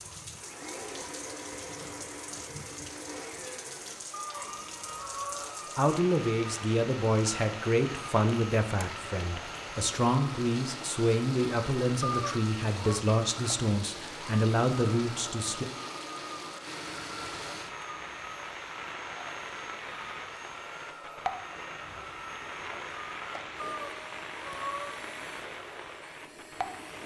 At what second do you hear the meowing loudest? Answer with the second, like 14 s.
12 s.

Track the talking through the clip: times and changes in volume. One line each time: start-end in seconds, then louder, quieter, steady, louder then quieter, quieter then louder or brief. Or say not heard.
5.8-15.7 steady.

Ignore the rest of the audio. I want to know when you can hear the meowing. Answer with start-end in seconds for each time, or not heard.
4.2-5.5, 12.0-13.1, 23.6-24.9.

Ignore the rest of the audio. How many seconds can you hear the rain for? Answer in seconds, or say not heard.
27 s.